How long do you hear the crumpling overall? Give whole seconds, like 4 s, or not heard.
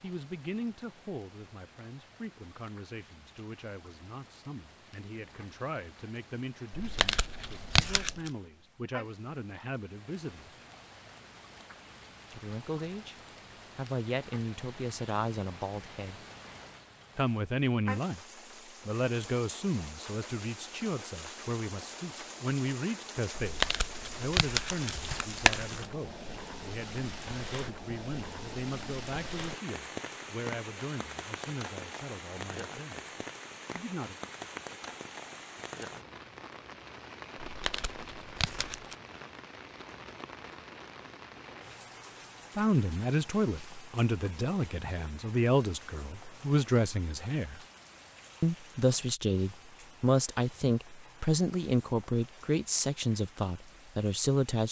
6 s.